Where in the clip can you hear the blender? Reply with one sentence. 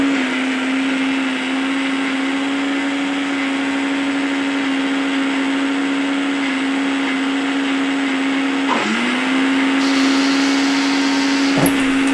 You can hear the blender from 0.0 to 12.1 s.